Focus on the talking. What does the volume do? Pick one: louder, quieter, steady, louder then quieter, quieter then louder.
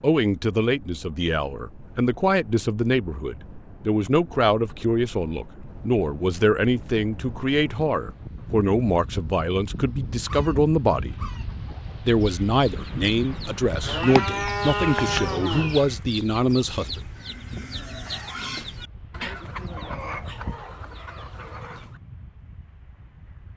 steady.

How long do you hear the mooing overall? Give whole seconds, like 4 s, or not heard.
2 s.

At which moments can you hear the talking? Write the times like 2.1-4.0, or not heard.
0.0-11.2, 12.1-17.1.